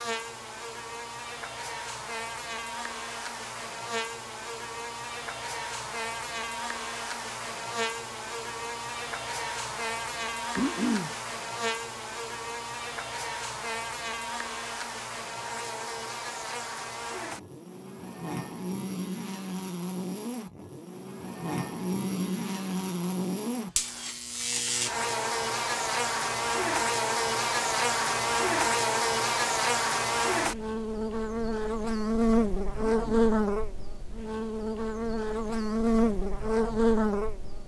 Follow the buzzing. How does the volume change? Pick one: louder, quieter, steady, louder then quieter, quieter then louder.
louder.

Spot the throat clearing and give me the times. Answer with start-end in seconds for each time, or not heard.
10.6-11.2, 32.8-33.3.